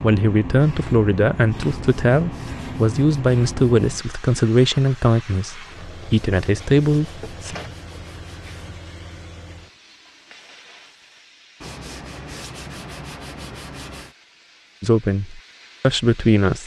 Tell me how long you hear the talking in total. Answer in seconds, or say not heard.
9 s.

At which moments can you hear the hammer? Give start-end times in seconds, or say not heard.
not heard.